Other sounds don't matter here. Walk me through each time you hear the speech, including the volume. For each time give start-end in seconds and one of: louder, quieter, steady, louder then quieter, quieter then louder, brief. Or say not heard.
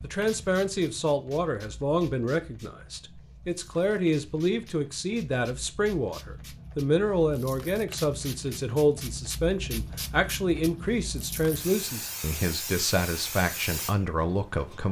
0.0-14.8 steady.